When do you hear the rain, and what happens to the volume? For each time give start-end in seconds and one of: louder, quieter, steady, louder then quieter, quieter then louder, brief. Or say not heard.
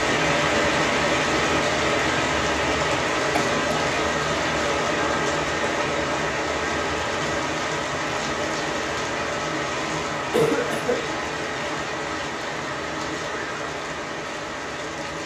0.0-15.2 quieter.